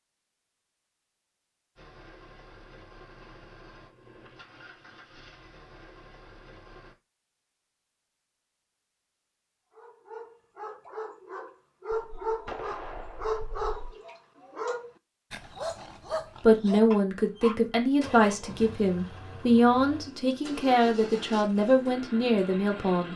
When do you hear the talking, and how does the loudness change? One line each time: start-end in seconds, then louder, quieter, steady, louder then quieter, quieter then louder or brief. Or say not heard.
16.4-23.1 steady.